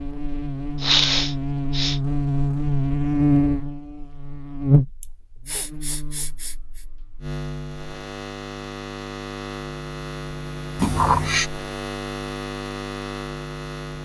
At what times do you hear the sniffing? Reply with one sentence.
You can hear the sniffing from 0.8 to 2.0 s, from 5.0 to 6.8 s and from 10.8 to 11.5 s.